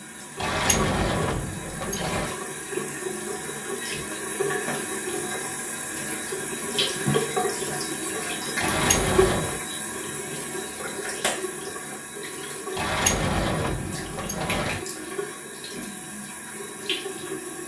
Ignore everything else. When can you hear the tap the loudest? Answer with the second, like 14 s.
7 s.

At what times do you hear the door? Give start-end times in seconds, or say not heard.
0.4-2.4, 8.6-9.6, 12.8-14.8.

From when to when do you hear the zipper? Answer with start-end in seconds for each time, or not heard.
not heard.